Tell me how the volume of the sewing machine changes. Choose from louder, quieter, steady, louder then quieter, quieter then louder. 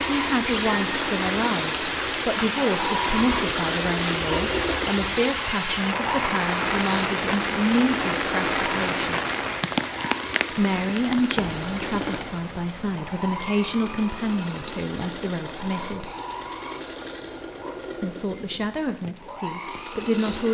quieter.